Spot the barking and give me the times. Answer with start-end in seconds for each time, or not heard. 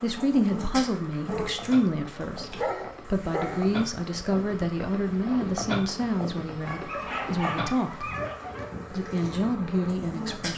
2.5-3.7, 6.7-8.7.